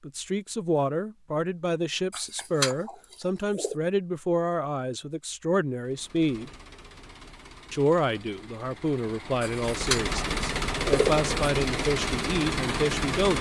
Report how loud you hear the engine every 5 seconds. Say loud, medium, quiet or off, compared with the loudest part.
off, quiet, loud.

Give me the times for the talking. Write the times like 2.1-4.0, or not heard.
0.0-6.5, 7.7-13.3.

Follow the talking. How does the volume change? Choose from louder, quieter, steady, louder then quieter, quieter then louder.
steady.